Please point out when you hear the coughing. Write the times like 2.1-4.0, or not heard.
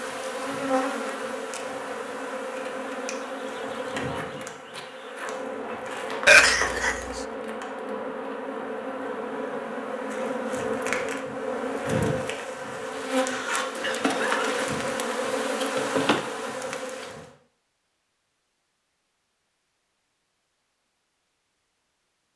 6.2-7.0, 13.2-14.6.